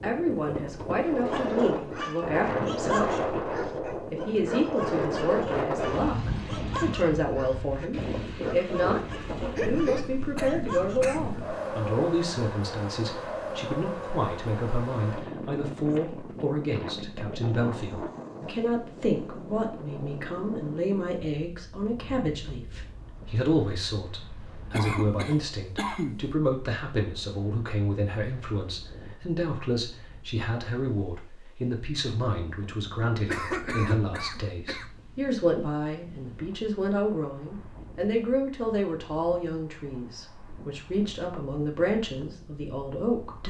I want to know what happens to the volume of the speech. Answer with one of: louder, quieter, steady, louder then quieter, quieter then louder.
steady.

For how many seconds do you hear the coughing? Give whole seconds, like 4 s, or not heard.
5 s.